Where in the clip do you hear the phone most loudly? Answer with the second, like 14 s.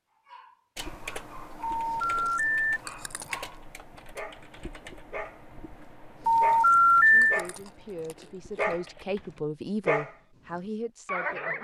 7 s.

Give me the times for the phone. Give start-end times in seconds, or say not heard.
1.6-2.8, 6.2-7.4.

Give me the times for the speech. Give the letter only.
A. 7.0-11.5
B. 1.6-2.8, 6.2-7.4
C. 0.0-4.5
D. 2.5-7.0
A.